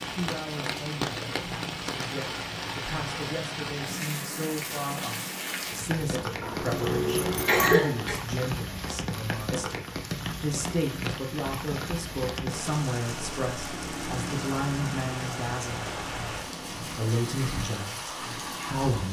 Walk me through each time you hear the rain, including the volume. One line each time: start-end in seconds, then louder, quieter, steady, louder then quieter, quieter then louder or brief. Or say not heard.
0.0-19.0 steady.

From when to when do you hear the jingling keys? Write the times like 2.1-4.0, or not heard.
6.4-7.8.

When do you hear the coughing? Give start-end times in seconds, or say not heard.
7.5-8.2.